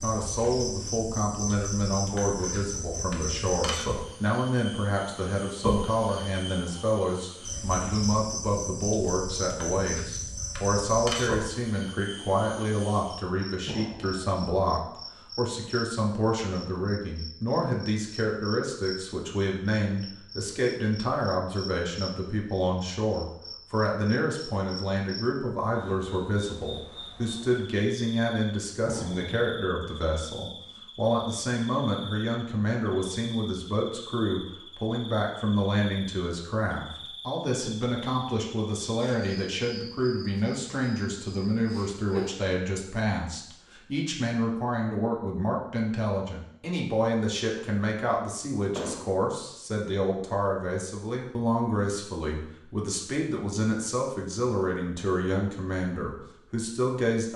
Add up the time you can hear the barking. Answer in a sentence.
You can't hear the barking here.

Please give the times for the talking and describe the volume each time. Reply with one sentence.
The talking can be heard from 0.0 to 57.3 s, at a steady volume.